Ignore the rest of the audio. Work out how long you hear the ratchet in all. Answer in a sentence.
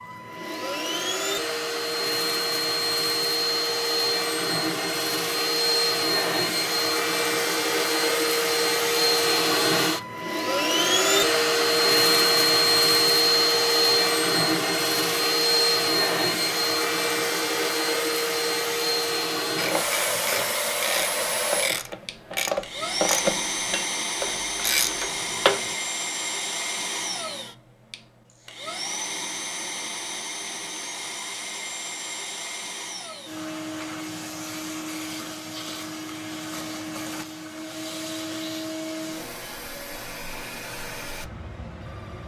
The ratchet can be heard for 6 seconds in total.